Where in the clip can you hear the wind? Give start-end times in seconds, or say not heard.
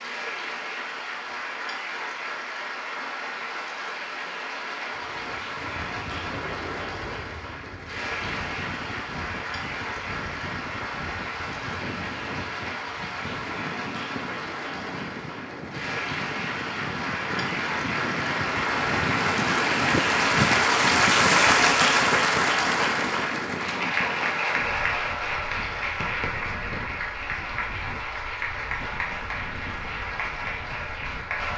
4.9-31.5.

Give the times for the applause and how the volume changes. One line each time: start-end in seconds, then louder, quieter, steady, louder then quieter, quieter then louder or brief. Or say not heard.
0.0-31.5 louder then quieter.